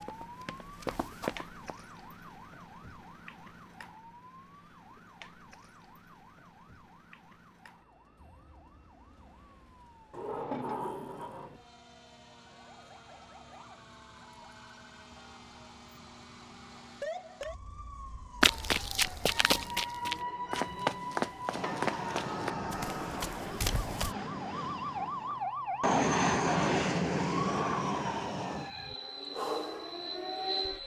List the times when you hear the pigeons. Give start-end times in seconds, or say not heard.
not heard.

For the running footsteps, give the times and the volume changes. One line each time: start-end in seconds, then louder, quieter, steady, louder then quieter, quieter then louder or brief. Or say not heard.
0.0-1.6 brief
18.4-24.1 quieter.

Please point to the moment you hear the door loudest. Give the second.
11 s.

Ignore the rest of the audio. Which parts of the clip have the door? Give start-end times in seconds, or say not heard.
10.1-11.6, 21.6-23.3.